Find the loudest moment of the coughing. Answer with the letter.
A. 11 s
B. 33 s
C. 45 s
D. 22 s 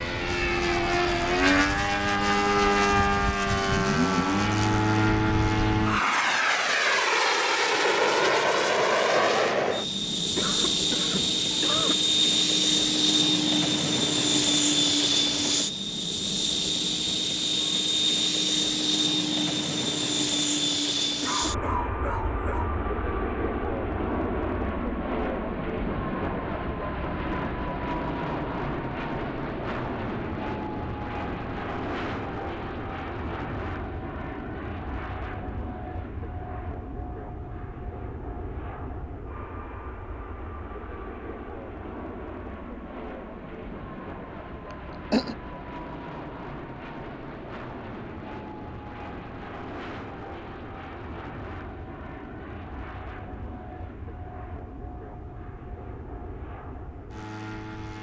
C.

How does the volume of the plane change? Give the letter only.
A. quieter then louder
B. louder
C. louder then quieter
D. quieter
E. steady
D.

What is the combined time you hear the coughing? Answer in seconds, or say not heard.
4 s.